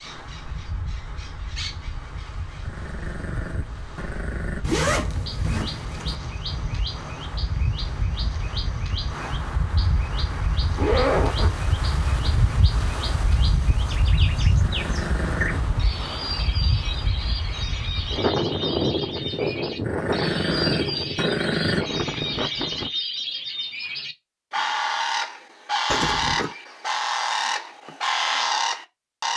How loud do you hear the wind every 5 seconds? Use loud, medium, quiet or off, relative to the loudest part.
quiet, medium, loud, loud, loud, off.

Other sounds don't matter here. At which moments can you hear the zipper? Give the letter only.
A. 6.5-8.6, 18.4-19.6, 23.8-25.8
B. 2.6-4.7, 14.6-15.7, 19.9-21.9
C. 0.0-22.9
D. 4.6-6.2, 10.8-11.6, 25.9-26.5
D.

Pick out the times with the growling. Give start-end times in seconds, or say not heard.
2.6-4.7, 14.6-15.7, 19.9-21.9.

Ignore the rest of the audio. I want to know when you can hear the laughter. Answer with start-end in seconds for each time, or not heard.
not heard.